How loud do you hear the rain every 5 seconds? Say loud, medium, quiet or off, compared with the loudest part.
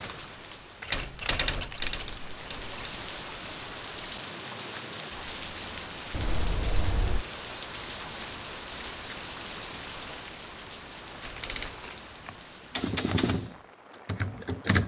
loud, loud, medium.